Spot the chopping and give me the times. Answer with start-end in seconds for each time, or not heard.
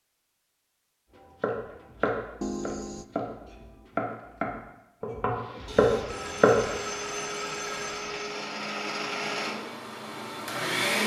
1.1-6.8.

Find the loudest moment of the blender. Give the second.
11 s.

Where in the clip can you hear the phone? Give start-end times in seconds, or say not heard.
2.4-3.0, 5.7-8.2.